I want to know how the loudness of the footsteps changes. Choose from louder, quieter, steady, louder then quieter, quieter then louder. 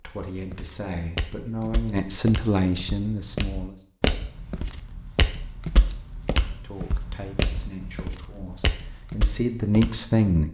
louder then quieter.